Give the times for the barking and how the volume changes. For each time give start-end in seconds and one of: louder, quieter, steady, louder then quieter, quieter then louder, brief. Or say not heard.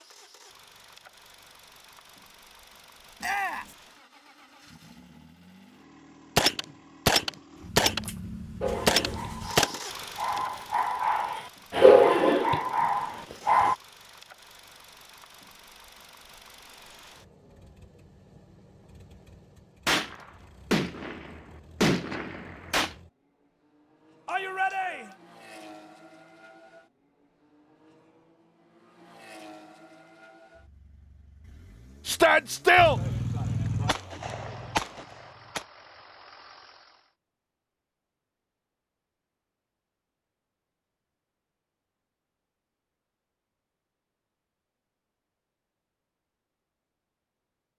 8.6-13.8 louder then quieter.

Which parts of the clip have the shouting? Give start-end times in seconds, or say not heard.
3.2-3.8, 24.2-25.1, 32.0-33.0.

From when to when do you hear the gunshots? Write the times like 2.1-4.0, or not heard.
6.3-9.8, 19.9-22.9, 32.8-35.6.